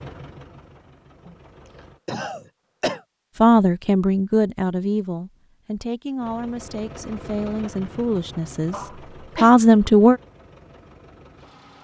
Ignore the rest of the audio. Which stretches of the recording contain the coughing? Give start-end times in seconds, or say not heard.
1.2-3.0, 8.7-9.5.